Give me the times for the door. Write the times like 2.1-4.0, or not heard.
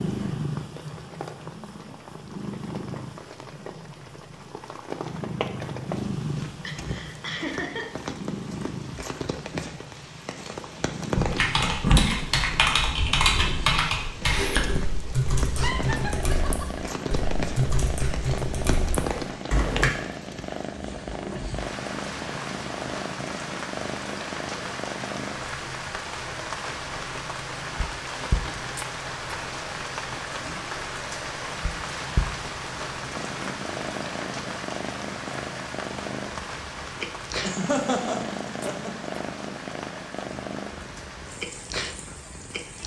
not heard.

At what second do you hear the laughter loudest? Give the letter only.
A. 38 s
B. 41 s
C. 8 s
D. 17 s
A.